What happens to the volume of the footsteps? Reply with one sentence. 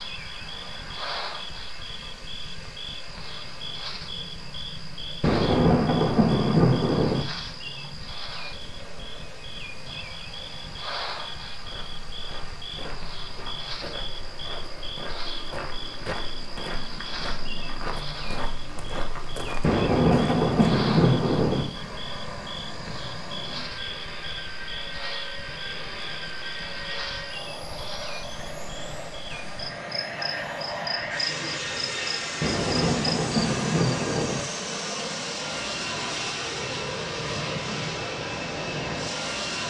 The loudness of the footsteps goes up.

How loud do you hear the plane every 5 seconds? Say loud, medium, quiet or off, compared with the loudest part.
quiet, quiet, quiet, quiet, medium, medium, loud, loud.